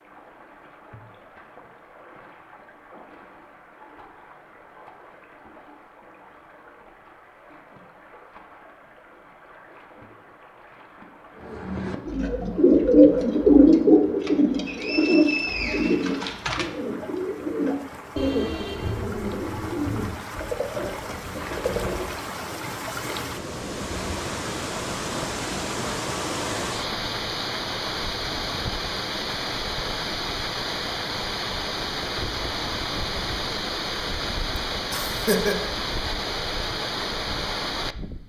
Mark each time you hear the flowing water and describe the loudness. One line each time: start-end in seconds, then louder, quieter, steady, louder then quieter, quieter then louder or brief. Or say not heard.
0.0-38.2 louder.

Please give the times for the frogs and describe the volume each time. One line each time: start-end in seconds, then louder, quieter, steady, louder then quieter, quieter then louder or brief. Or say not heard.
not heard.